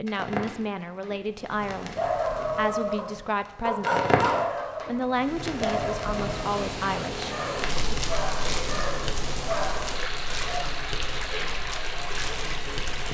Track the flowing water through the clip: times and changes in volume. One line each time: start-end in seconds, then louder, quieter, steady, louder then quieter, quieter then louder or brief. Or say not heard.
6.2-13.0 steady.